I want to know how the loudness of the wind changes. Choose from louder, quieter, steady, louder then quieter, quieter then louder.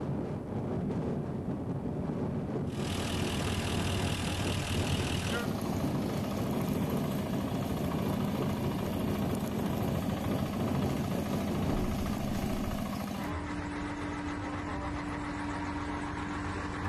steady.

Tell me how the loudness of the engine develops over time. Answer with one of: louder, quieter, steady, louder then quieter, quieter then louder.
steady.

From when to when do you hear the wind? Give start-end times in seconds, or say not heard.
0.0-12.9.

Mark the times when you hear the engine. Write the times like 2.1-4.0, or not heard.
2.6-16.8.